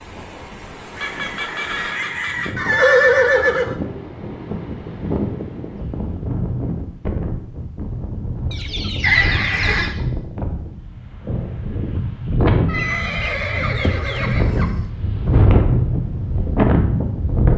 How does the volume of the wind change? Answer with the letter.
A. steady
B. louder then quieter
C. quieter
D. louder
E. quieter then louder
D.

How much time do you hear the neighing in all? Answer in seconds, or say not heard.
4 s.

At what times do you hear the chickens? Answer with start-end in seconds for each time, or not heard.
0.9-2.5, 8.5-10.0, 12.8-14.8.